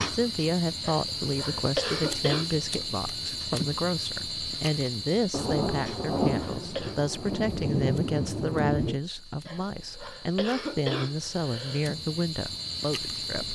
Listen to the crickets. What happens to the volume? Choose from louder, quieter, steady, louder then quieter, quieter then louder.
quieter then louder.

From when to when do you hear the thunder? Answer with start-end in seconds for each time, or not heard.
5.3-9.0.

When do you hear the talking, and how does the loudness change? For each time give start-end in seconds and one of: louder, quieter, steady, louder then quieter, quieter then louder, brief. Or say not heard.
0.1-13.4 steady.